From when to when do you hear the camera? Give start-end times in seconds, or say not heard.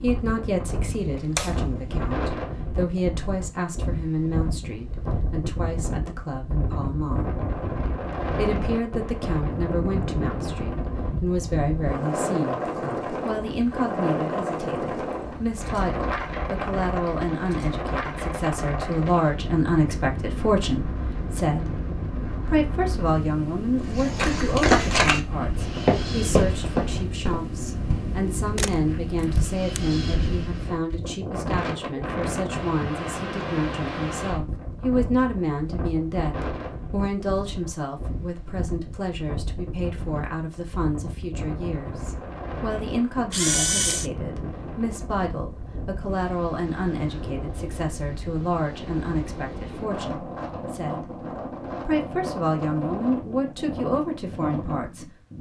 0.9-2.1, 28.6-29.8, 43.3-44.1.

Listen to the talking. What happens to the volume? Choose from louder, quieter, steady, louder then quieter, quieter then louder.
steady.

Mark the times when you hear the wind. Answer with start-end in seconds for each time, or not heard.
0.0-55.3.